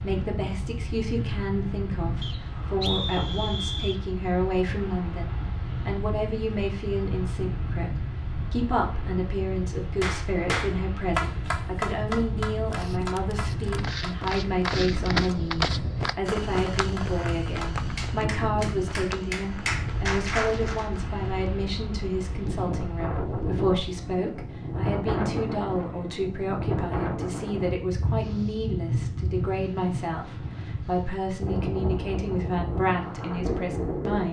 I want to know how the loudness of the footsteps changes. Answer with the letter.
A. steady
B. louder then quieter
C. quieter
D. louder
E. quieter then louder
C.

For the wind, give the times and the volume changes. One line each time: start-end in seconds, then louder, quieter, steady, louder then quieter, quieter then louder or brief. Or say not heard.
0.0-34.2 steady.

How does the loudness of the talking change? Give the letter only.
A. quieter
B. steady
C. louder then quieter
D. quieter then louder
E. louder
B.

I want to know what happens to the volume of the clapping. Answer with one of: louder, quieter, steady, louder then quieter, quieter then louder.
quieter then louder.